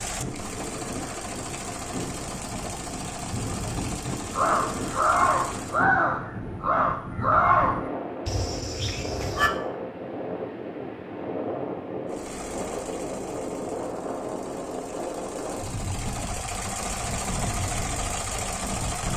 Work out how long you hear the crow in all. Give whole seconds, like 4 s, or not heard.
5 s.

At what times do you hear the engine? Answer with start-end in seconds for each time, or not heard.
0.0-5.8, 12.1-19.1.